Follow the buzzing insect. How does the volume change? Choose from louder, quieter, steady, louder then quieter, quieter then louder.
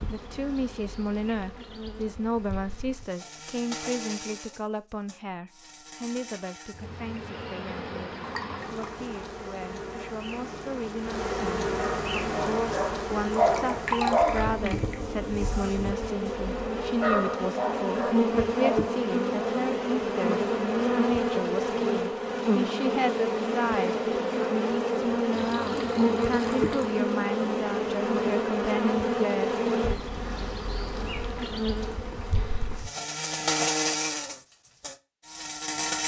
louder.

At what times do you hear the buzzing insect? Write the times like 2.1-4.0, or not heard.
0.0-36.0.